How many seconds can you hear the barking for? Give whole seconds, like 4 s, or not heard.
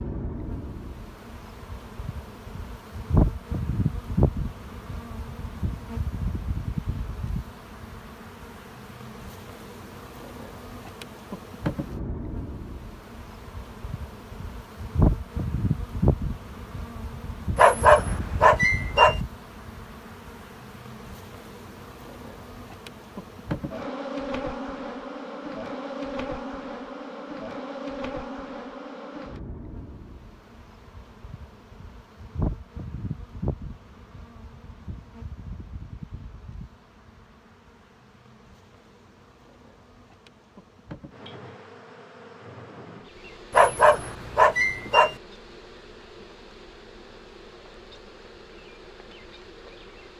3 s.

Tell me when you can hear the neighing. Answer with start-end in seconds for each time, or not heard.
not heard.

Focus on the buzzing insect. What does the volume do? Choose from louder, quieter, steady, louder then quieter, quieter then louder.
quieter.